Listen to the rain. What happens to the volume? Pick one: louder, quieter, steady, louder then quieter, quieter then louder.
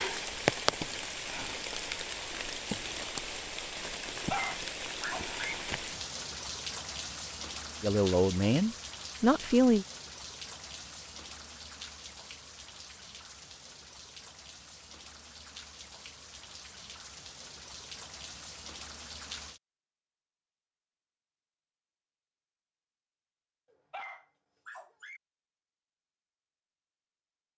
quieter.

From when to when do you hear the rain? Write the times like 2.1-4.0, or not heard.
0.0-19.6.